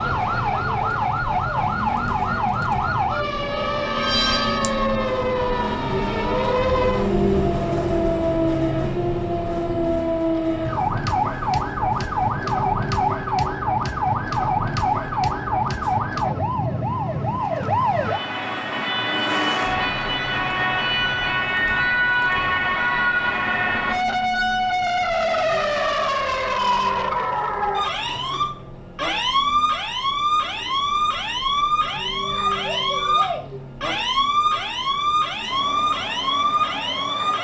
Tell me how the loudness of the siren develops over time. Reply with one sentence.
The volume of the siren stays about the same.